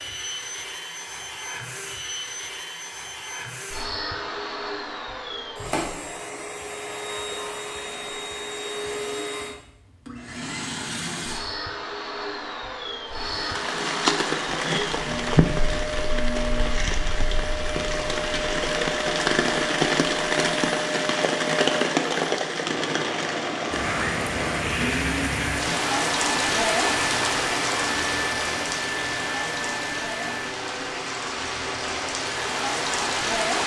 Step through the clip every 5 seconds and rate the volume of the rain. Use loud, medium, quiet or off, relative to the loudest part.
off, off, loud, loud, loud, loud, loud.